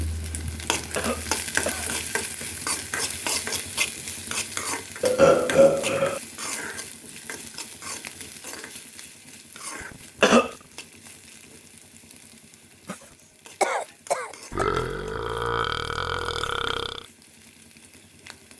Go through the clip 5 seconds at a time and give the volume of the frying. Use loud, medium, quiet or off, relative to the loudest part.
loud, medium, quiet, quiet.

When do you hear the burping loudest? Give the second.
5 s.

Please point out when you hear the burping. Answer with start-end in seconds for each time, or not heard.
5.0-6.2, 14.5-17.1.